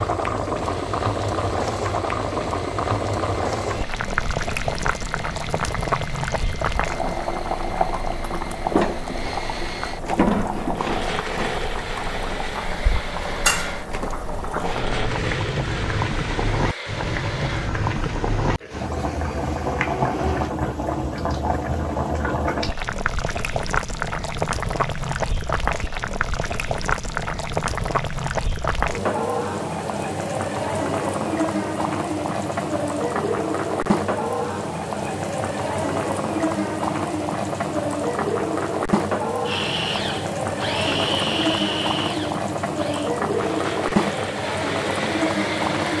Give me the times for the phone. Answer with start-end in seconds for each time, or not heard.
not heard.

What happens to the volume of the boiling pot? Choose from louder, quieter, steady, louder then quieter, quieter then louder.
steady.